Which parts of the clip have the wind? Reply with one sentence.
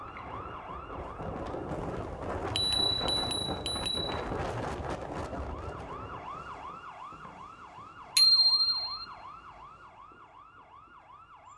You can hear the wind from 0.0 to 6.8 s.